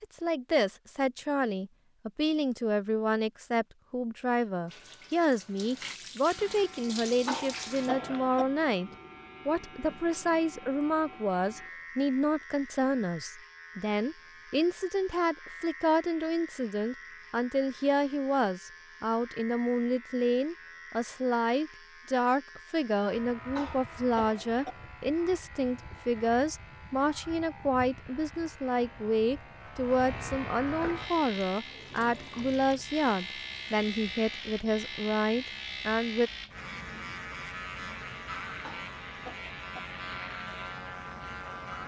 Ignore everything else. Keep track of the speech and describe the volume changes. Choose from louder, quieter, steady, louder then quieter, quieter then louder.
steady.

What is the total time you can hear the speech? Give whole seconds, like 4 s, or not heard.
36 s.